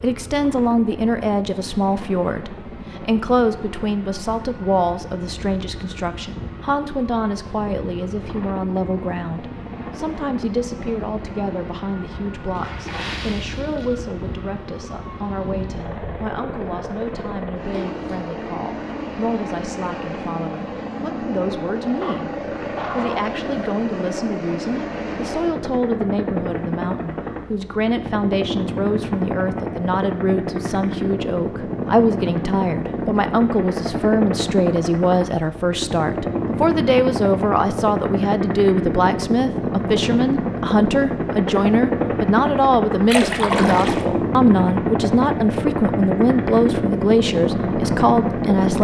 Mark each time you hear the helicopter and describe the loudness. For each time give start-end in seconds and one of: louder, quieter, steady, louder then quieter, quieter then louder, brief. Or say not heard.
0.0-48.7 louder.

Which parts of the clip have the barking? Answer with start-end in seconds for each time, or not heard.
22.0-23.3.